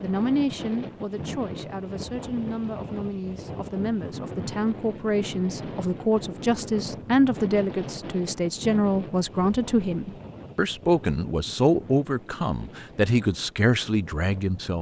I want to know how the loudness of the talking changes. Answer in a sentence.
The loudness of the talking goes up.